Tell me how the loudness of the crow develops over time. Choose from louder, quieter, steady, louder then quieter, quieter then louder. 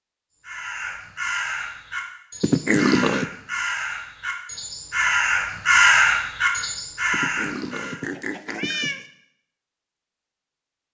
louder then quieter.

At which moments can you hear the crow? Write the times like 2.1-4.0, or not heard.
0.5-8.0.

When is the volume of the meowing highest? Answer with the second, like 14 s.
3 s.